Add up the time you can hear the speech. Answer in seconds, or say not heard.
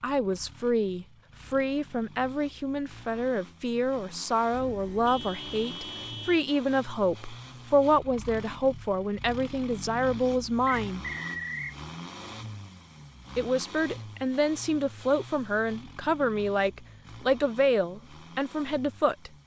17 s.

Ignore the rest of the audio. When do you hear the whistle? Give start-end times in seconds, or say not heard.
10.7-11.8.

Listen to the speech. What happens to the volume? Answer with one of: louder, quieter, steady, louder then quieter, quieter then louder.
steady.